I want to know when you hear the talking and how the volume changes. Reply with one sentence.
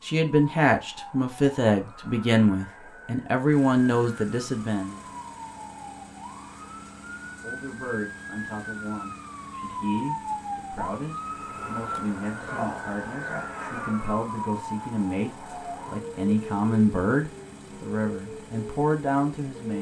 The talking can be heard from 0.1 to 5.0 s, at a steady volume; and from 7.4 to 19.7 s, getting louder.